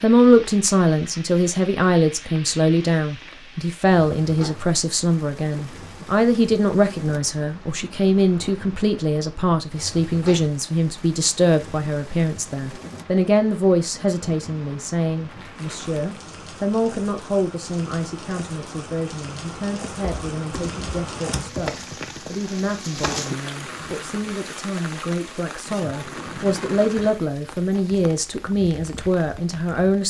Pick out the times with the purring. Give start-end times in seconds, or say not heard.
not heard.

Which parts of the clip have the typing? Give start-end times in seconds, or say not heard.
20.0-21.8.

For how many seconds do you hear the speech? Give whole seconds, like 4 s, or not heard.
30 s.